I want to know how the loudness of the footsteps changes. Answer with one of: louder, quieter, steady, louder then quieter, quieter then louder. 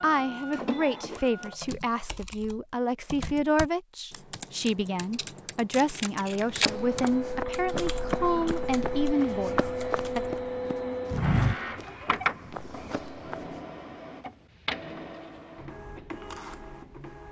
louder then quieter.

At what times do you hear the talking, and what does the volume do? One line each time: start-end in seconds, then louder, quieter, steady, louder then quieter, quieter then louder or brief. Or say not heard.
0.0-10.2 steady.